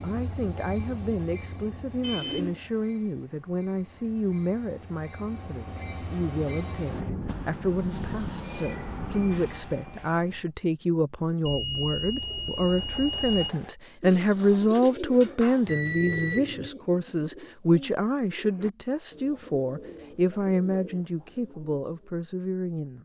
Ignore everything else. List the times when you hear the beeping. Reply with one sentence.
The beeping can be heard from 2.0 to 2.6 s, from 11.4 to 13.6 s and from 15.7 to 16.7 s.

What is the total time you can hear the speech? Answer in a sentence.
You can hear the speech for 23 seconds altogether.